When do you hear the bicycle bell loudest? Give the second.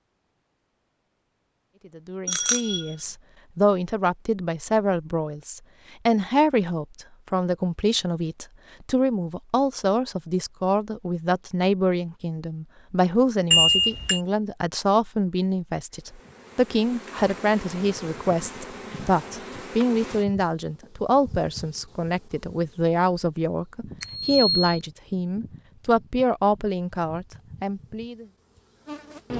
14 s.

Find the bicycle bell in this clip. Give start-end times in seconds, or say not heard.
2.2-2.9, 13.5-14.2, 24.0-24.8.